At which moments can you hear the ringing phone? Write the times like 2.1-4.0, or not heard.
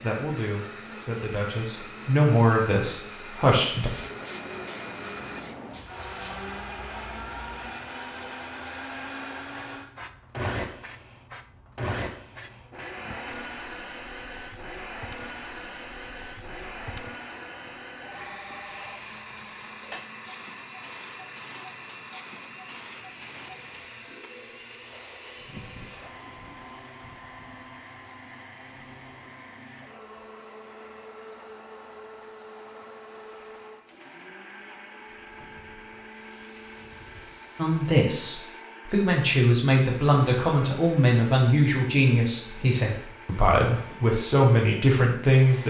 18.0-19.1.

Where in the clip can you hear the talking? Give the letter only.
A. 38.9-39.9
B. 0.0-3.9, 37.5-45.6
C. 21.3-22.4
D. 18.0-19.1
B.